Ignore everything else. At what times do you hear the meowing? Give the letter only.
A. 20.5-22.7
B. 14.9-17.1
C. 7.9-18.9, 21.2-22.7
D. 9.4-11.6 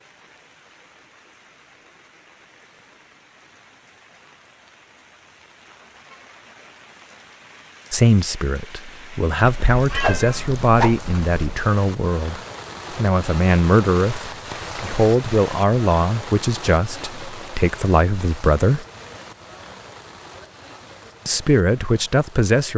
D.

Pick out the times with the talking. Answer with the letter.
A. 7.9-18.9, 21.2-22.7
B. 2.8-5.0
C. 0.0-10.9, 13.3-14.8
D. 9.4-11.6
A.